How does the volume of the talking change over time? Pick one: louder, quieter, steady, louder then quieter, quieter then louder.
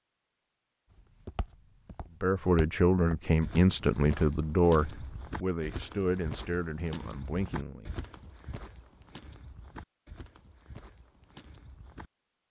quieter.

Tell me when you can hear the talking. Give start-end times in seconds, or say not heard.
2.2-8.0.